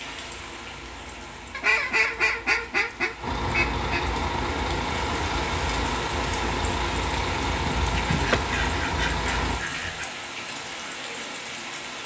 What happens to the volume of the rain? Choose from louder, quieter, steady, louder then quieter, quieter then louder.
louder.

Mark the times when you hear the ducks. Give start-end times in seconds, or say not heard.
1.5-4.1, 8.1-10.1.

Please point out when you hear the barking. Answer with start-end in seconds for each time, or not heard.
not heard.